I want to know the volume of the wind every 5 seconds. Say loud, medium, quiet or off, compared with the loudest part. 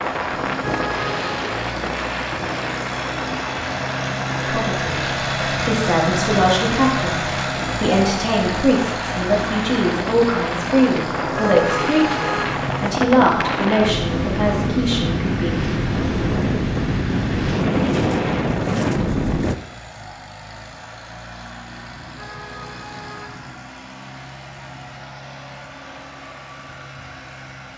medium, medium, loud, loud, off, off.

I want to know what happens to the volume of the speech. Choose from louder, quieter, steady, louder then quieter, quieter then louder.
steady.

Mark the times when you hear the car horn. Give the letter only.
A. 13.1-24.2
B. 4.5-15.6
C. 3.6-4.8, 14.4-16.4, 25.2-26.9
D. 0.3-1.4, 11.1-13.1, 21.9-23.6
D.